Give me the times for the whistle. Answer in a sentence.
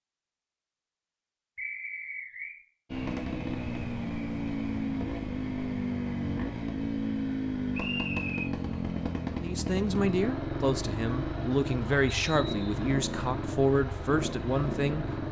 You can hear the whistle from 1.6 to 2.5 s, from 7.7 to 8.4 s and from 12.2 to 12.8 s.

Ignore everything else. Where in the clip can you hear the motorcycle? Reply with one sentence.
The motorcycle can be heard from 2.9 to 15.2 s.